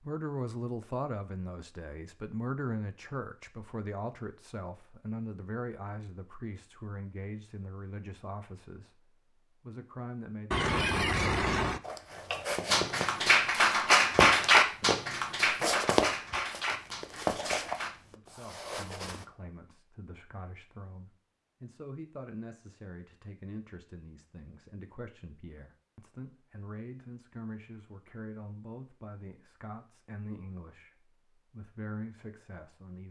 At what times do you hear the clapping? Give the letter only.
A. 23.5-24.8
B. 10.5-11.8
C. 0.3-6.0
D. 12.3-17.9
D.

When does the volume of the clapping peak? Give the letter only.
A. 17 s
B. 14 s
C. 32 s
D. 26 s
B.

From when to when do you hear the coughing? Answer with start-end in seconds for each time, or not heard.
10.5-11.8.